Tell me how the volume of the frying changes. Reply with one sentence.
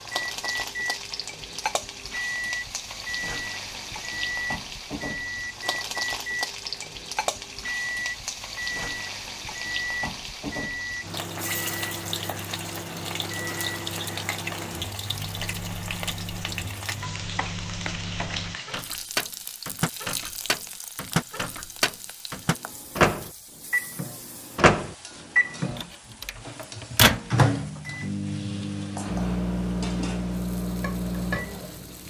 The loudness of the frying goes down.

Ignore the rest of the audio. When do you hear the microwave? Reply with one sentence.
You can hear the microwave from 0.0 to 32.0 s.